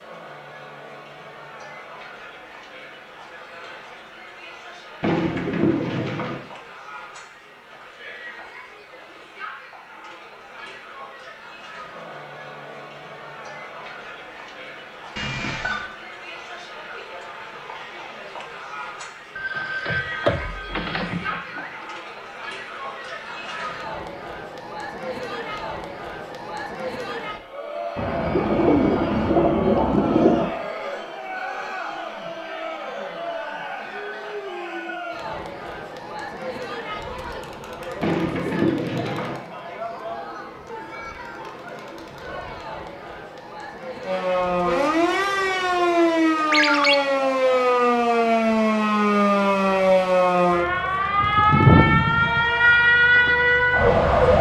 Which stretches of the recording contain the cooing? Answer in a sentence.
You can hear the cooing from 5.0 to 6.4 s, from 27.9 to 30.5 s and from 38.0 to 39.4 s.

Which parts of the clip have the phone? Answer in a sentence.
You can hear the phone from 15.2 to 15.8 s, from 19.4 to 21.8 s and from 46.5 to 47.0 s.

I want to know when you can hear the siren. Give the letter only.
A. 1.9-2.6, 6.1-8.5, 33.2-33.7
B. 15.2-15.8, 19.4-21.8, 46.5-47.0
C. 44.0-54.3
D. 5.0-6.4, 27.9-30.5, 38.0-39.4
C.